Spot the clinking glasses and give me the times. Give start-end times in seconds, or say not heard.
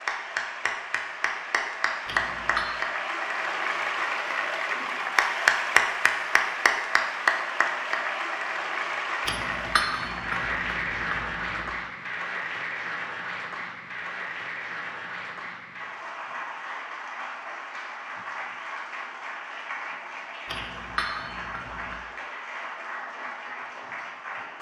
2.0-2.8, 9.2-11.7, 20.4-21.9.